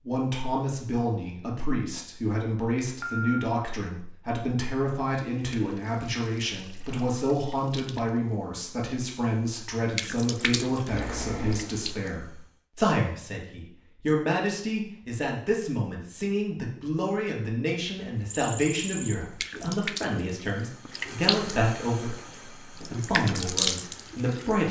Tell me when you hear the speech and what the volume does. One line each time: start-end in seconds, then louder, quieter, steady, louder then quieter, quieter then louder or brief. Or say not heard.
0.1-24.6 steady.